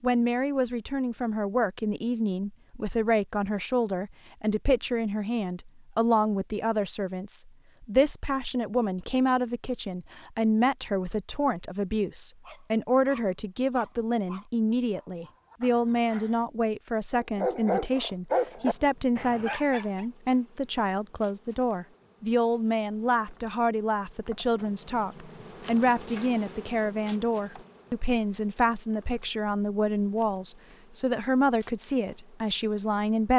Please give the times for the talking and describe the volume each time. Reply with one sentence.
The talking can be heard from 0.0 to 33.3 s, at a steady volume.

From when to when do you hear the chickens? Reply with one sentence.
You can't hear the chickens here.